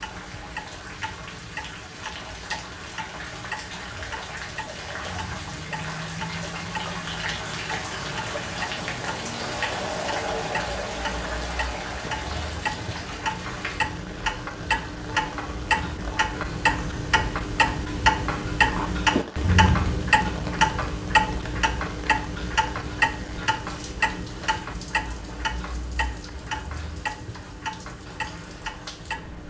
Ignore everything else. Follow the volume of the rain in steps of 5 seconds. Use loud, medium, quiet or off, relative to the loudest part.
medium, loud, loud, medium, medium, quiet.